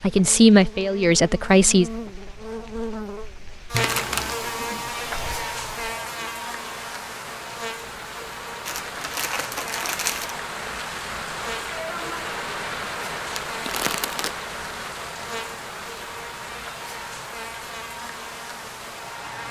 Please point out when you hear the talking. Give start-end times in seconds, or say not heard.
0.0-1.9.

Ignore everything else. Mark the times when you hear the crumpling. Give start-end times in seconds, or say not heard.
3.7-4.4, 8.7-10.3, 13.3-14.3.